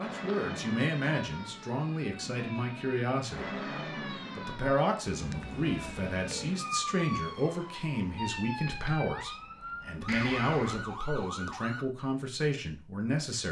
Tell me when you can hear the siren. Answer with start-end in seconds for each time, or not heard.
0.0-11.8.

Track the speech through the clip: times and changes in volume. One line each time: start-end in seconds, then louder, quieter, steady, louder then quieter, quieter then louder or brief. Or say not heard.
0.0-13.4 steady.